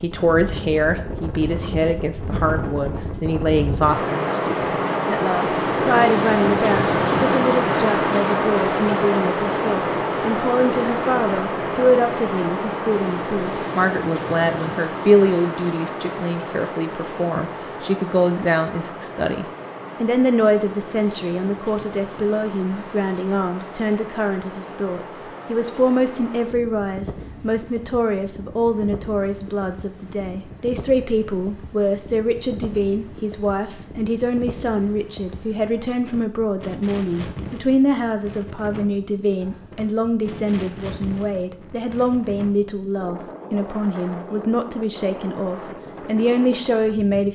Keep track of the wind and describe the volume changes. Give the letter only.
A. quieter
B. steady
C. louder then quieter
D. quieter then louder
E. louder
A.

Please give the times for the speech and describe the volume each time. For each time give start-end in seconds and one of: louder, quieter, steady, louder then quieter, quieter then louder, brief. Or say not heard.
0.0-47.3 steady.